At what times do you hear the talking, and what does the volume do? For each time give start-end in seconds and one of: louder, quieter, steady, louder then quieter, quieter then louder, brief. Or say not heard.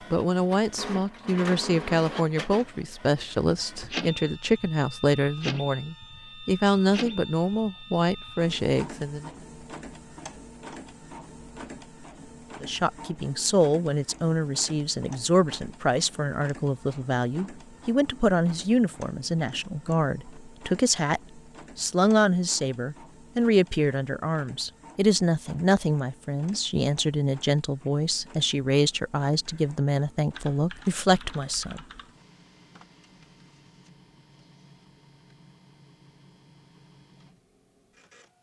0.1-9.3 steady
12.6-31.8 steady.